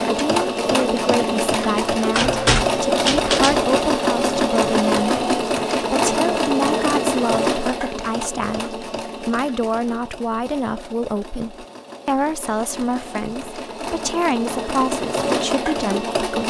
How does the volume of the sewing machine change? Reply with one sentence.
The volume of the sewing machine goes down, then up.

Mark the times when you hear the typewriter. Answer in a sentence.
The typewriter can be heard from 2.1 to 3.8 s.